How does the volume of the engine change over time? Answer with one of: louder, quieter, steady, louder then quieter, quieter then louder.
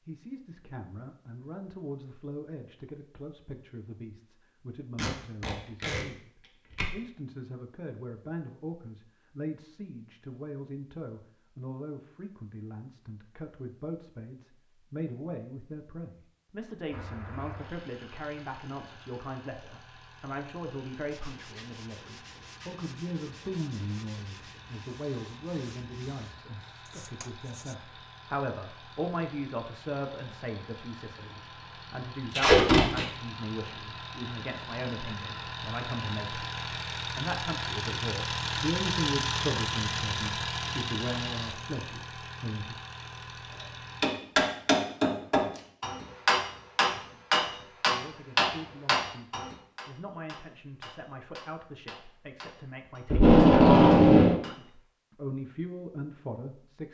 louder.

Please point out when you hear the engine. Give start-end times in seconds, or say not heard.
16.9-44.1.